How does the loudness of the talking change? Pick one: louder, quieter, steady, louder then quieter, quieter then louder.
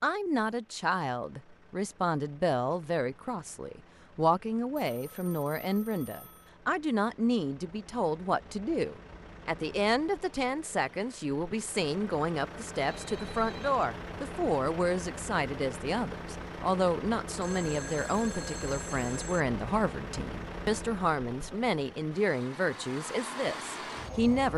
steady.